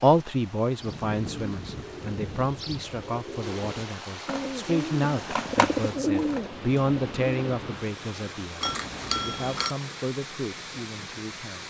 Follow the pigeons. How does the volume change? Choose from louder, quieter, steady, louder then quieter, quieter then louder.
louder.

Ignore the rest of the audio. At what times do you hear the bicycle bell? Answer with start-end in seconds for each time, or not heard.
8.6-9.8.